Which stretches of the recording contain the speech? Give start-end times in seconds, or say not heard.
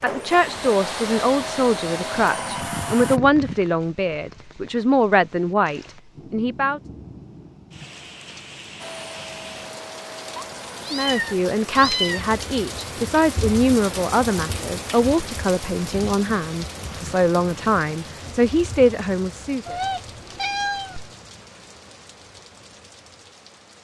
0.0-6.8, 10.9-19.8.